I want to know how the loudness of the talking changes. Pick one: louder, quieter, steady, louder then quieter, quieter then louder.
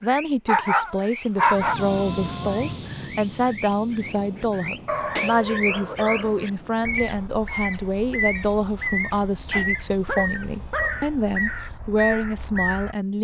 steady.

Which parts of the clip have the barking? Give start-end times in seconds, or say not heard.
0.5-2.7, 4.8-6.5, 9.3-11.0.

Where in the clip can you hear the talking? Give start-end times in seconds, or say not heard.
0.0-13.1.